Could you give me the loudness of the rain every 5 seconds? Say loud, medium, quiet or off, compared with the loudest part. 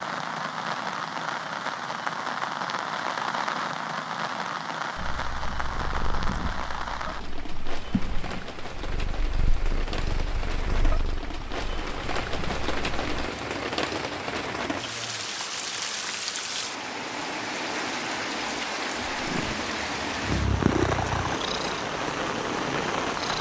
loud, medium, loud, loud, loud.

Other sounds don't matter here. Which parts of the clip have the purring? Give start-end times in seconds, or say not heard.
5.0-13.2, 19.1-23.3.